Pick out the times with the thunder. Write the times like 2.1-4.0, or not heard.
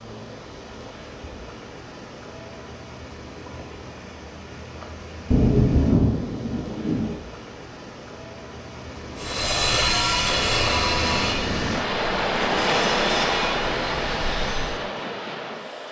5.3-7.2.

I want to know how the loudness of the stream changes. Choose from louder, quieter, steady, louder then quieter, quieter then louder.
louder.